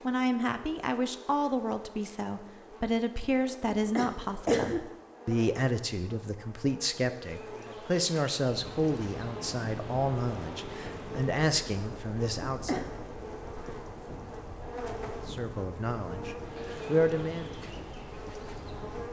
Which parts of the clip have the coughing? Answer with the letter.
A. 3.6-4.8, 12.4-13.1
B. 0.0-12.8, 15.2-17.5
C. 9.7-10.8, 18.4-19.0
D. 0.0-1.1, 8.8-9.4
A.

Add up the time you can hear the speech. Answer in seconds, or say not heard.
15 s.